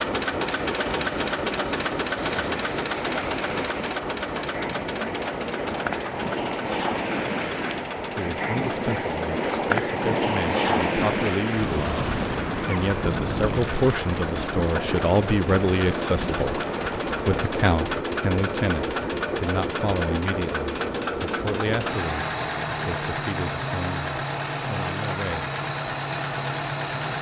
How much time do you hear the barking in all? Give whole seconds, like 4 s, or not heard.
not heard.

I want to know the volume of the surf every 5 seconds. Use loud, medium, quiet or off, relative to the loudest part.
medium, loud, loud, medium, off, off.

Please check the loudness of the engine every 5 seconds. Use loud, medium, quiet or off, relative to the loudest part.
loud, medium, medium, loud, loud, loud.